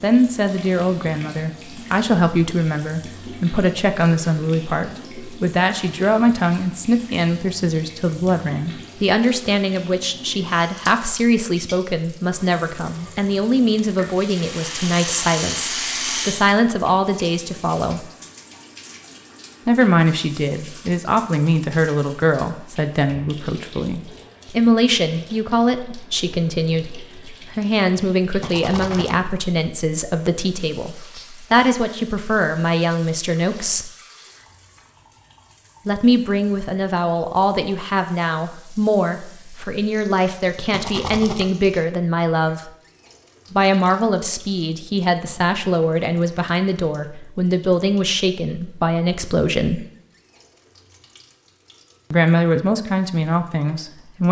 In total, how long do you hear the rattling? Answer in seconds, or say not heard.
4 s.